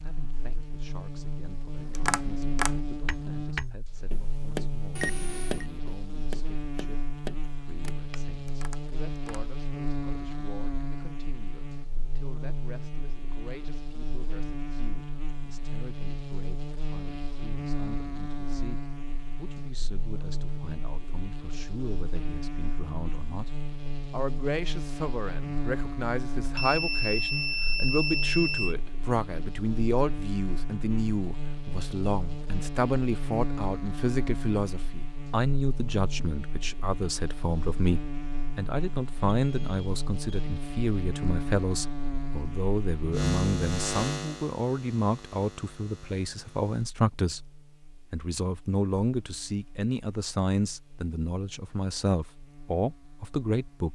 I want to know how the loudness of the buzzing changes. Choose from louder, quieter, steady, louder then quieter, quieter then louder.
steady.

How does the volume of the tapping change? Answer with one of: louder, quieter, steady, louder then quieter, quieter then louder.
quieter.